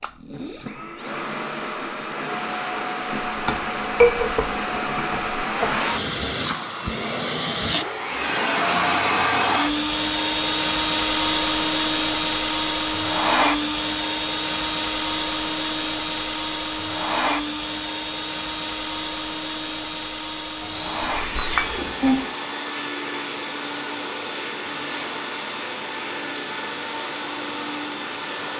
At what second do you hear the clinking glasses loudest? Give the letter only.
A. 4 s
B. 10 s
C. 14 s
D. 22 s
A.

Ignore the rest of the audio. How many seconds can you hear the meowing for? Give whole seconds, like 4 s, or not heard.
2 s.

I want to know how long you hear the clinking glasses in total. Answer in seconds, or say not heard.
3 s.